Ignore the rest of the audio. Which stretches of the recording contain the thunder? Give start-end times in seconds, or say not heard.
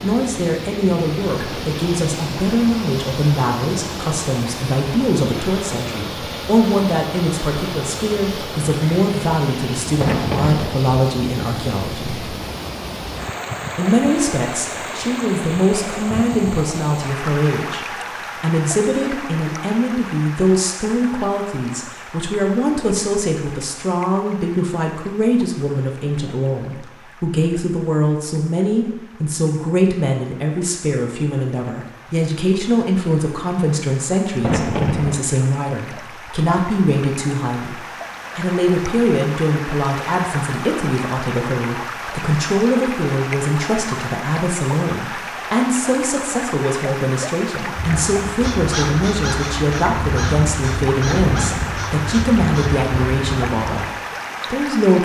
10.0-10.8, 34.4-35.2, 51.0-51.9.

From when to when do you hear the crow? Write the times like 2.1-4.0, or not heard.
47.8-53.9.